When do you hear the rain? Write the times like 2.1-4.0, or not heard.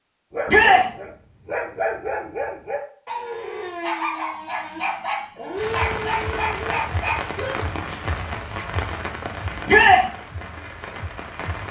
5.5-11.6.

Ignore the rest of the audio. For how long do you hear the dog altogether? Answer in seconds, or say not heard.
7 s.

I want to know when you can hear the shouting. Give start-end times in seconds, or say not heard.
0.5-0.9, 9.7-10.1.